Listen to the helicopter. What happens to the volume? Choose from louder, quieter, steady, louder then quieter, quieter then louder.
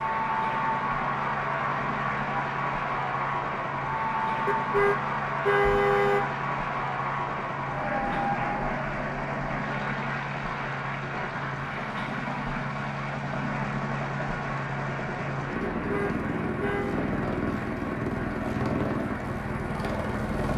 louder.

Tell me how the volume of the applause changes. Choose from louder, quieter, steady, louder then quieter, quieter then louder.
quieter.